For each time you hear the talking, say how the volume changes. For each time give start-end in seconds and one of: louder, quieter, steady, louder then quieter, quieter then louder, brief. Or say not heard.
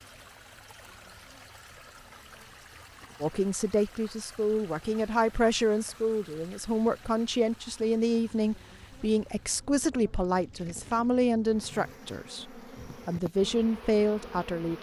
3.2-14.7 steady.